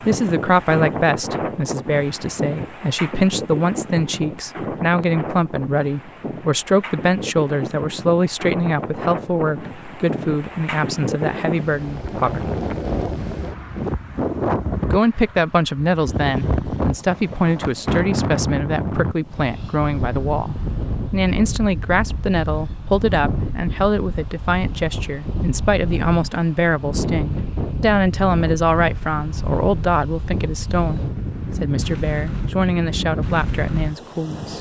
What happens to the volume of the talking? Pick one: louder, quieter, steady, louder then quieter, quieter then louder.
steady.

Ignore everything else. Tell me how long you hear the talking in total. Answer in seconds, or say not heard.
32 s.